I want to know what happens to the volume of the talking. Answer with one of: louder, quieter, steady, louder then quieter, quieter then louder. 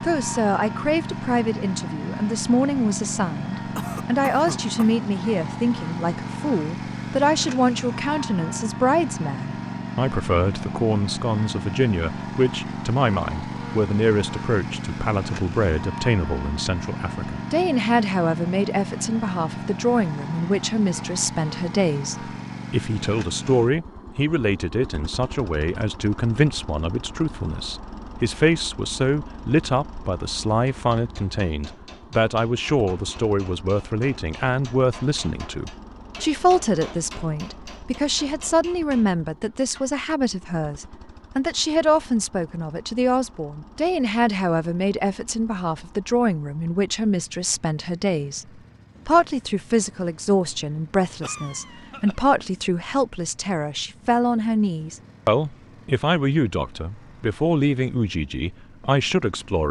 steady.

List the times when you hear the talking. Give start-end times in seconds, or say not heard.
0.0-59.6.